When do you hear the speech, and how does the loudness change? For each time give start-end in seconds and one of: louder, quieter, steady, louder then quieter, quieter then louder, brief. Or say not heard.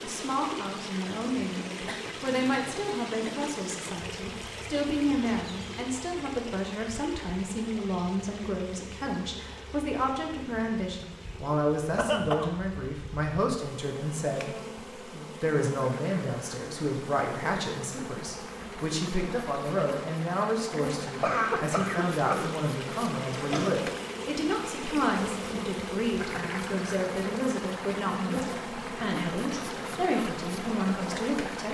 0.0-31.6 steady.